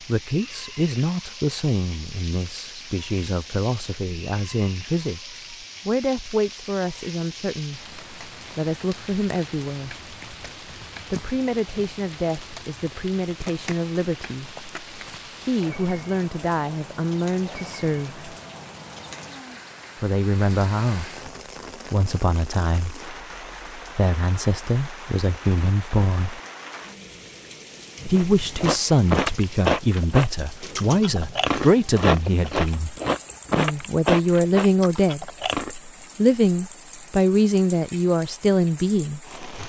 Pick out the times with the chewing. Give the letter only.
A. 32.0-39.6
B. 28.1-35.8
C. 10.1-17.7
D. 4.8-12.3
B.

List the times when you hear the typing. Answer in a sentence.
You can't hear the typing here.